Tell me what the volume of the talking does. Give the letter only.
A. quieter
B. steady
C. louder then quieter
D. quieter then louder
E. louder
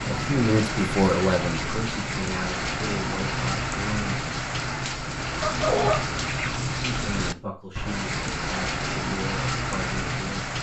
A.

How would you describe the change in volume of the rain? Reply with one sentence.
The volume of the rain stays about the same.